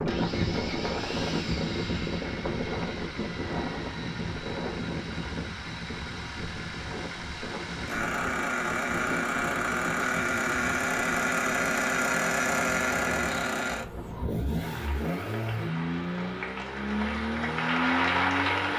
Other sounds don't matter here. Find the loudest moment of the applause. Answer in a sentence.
The volume of the applause peaks at 18 seconds.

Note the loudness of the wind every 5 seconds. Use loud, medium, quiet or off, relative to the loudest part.
loud, medium, medium, off.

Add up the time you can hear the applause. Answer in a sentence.
You can hear the applause for 4 seconds altogether.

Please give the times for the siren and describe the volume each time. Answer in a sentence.
The siren can't be heard in this clip.